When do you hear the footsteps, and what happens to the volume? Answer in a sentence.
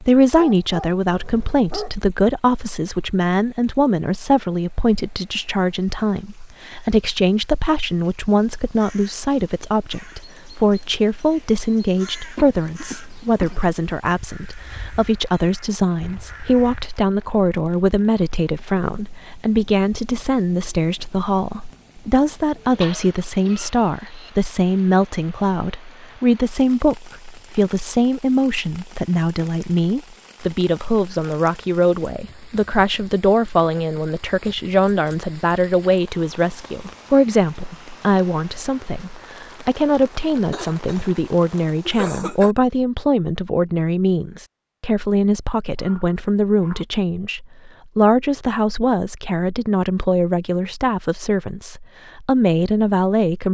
You can't hear the footsteps here.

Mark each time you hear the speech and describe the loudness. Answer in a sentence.
You can hear the speech from 0.0 to 53.5 s, at a steady volume.